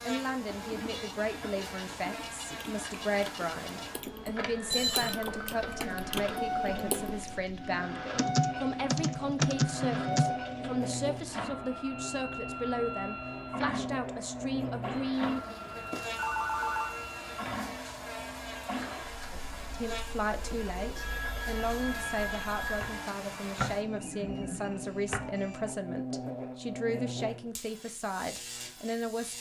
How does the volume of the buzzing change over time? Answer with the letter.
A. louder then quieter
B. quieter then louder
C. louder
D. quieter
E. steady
E.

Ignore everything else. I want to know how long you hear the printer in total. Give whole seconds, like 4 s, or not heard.
26 s.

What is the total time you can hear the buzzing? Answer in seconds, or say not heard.
29 s.